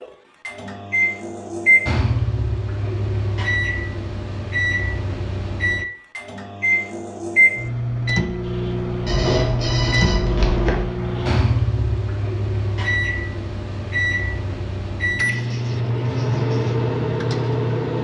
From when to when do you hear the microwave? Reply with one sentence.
You can hear the microwave from 0.0 to 17.9 s.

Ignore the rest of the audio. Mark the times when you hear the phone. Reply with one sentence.
You can hear the phone from 9.1 to 10.8 s.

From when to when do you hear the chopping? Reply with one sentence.
You can't hear the chopping here.